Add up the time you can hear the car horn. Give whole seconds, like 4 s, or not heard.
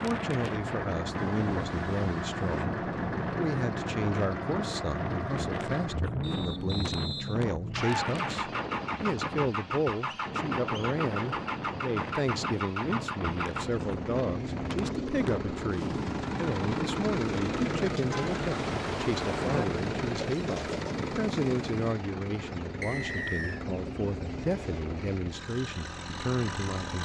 3 s.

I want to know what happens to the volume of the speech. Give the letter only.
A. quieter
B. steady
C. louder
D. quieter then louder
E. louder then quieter
B.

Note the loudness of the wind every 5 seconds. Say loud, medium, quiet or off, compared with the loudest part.
loud, loud, loud, loud, loud, off.